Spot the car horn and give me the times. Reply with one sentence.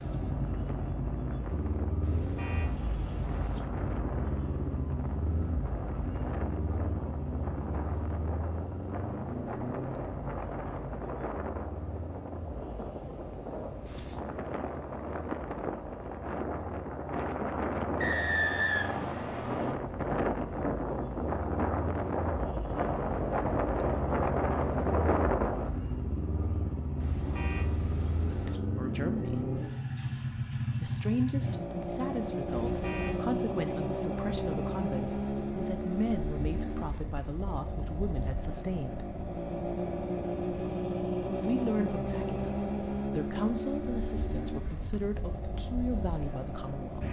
The car horn can be heard from 2.0 to 3.6 s, from 26.9 to 28.6 s and from 32.5 to 33.2 s.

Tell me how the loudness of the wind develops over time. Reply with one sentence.
The loudness of the wind goes up.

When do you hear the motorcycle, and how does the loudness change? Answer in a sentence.
The motorcycle can be heard from 0.0 to 47.0 s, getting quieter then louder.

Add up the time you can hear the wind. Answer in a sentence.
You can hear the wind for 26 seconds altogether.